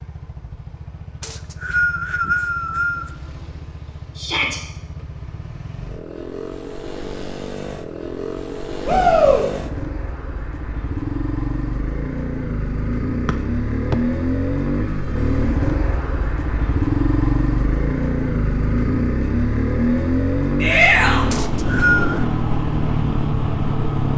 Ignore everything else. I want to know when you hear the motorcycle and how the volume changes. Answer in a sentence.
You can hear the motorcycle from 0.0 to 24.1 s, getting louder.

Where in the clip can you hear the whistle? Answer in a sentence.
You can hear the whistle from 1.2 to 3.1 s, from 13.2 to 13.9 s and from 21.3 to 22.2 s.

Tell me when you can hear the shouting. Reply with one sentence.
You can hear the shouting from 4.2 to 4.6 s, from 8.8 to 9.4 s and from 20.6 to 21.2 s.